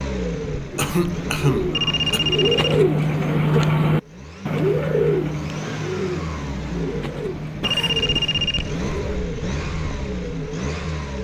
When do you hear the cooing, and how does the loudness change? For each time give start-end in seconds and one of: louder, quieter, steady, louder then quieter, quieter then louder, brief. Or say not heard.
0.7-9.2 louder then quieter.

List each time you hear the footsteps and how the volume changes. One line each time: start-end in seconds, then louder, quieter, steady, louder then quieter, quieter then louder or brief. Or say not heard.
not heard.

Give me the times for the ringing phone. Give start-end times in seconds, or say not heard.
1.7-2.9, 7.6-8.7.